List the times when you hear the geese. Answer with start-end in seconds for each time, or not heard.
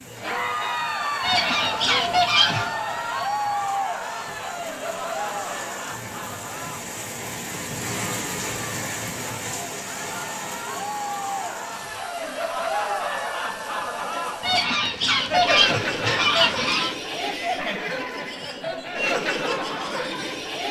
1.2-2.8, 14.4-16.9.